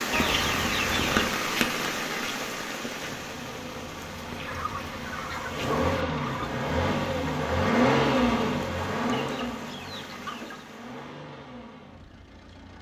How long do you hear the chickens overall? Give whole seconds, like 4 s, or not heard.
5 s.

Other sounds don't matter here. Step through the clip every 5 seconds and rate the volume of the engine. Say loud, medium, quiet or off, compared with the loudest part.
quiet, loud, quiet.